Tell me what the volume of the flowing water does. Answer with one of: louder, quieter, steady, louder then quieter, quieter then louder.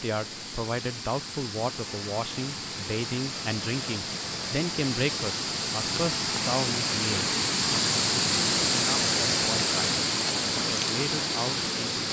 louder.